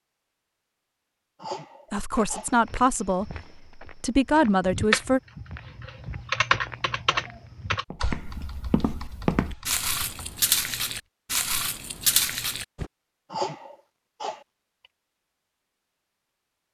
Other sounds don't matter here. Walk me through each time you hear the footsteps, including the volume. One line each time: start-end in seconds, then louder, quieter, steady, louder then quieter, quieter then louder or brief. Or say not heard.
2.1-12.9 louder.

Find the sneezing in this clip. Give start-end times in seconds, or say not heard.
1.4-2.5, 13.3-14.4.